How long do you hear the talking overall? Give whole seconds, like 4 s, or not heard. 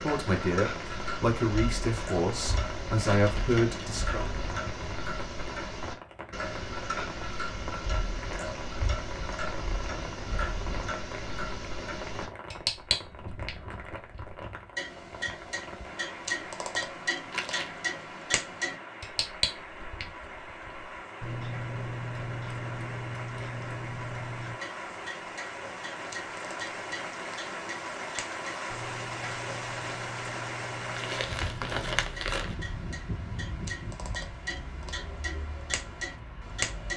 4 s.